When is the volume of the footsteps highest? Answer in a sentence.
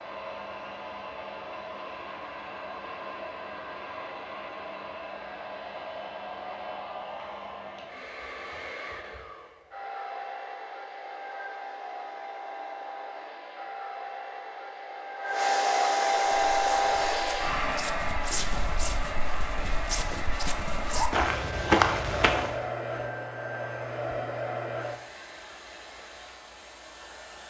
The loudest moment of the footsteps is at 22 seconds.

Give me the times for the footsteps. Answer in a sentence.
The footsteps can be heard from 16.1 to 22.6 s.